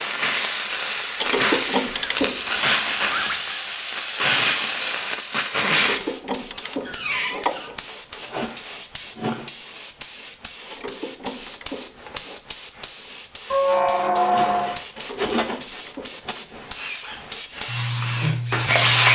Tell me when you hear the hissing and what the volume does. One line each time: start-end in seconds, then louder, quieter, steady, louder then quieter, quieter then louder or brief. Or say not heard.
0.0-19.1 quieter then louder.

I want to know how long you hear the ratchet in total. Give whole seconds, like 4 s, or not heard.
7 s.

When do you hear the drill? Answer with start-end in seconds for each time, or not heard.
16.8-19.1.